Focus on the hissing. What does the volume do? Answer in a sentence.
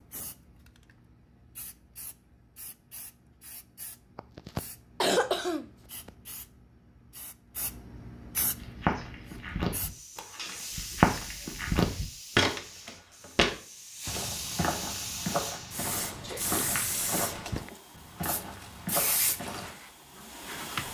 The loudness of the hissing goes up.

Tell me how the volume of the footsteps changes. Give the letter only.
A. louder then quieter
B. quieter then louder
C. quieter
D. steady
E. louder
C.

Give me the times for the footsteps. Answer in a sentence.
You can hear the footsteps from 8.6 to 19.7 s.